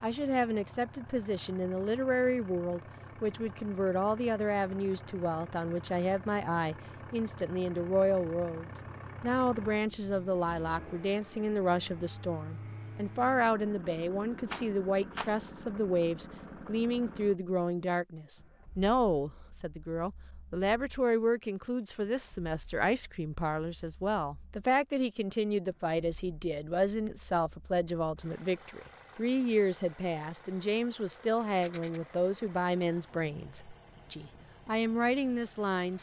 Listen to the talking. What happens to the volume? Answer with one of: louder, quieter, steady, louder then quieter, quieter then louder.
steady.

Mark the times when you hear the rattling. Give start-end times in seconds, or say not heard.
14.5-15.3, 31.4-32.0.